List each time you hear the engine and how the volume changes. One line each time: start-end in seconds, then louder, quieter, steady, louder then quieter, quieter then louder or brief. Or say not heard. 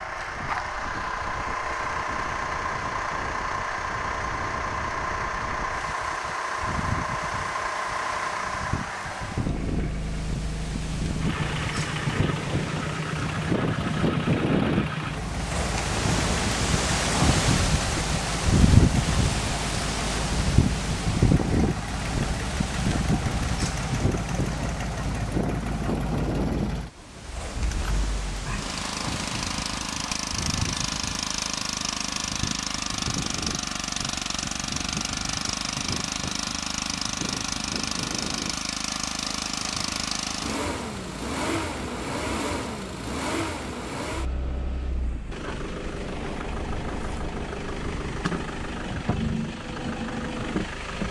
0.0-51.0 steady.